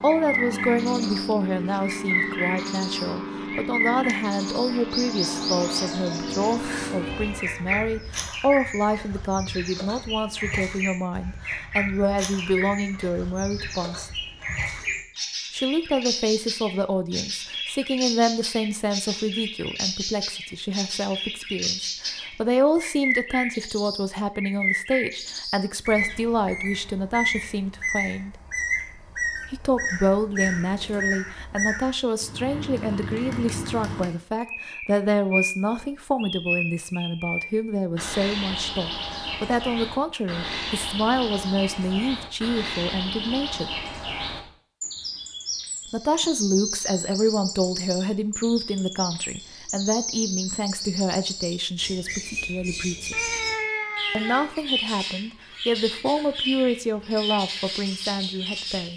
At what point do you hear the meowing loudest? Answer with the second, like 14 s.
54 s.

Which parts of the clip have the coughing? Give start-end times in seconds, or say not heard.
not heard.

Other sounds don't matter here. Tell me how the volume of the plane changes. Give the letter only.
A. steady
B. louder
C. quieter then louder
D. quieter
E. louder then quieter
A.